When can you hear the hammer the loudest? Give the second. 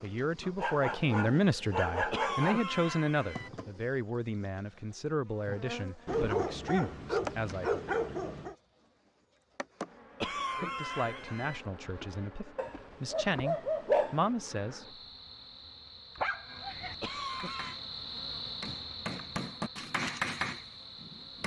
20 s.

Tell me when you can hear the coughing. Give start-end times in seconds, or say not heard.
2.1-3.5, 10.2-11.6, 17.0-17.8.